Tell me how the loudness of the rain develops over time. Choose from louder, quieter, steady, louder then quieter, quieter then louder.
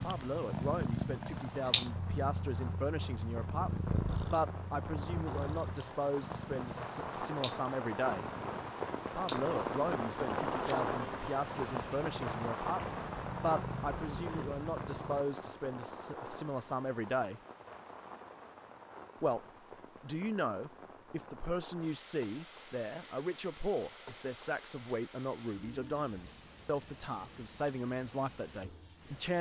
louder then quieter.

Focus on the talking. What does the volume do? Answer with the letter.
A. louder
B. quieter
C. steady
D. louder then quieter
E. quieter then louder
C.